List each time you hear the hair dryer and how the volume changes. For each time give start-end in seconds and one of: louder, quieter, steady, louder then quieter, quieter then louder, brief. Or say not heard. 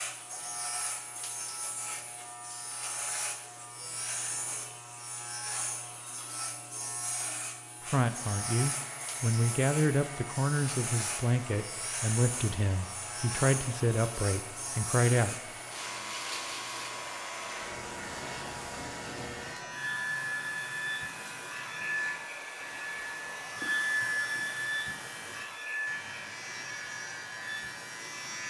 8.0-28.4 louder.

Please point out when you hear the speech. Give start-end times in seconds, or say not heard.
7.8-15.3.